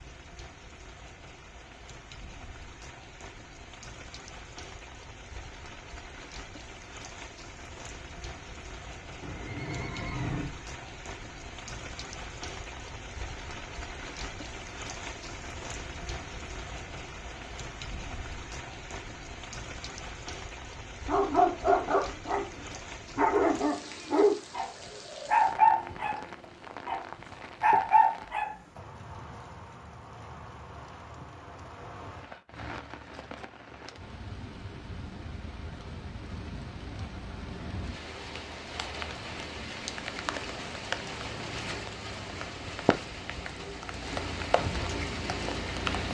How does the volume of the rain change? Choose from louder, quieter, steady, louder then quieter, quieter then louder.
louder.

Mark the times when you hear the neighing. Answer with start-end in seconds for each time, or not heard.
9.2-10.5.